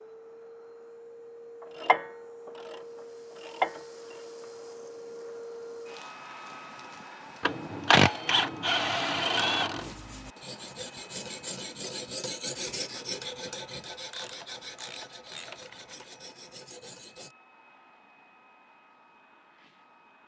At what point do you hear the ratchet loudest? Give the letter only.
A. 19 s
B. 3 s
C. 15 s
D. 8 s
D.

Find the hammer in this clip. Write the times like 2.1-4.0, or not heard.
not heard.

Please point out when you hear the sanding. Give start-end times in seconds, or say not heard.
9.8-17.4.